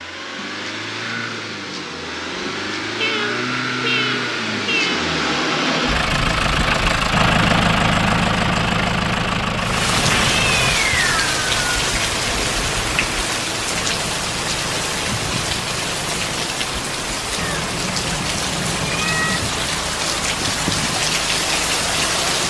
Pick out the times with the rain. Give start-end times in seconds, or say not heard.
9.6-22.4.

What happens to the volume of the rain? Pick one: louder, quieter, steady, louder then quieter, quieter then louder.
steady.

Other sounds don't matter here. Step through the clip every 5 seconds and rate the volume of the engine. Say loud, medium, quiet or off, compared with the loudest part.
medium, loud, medium, quiet, quiet.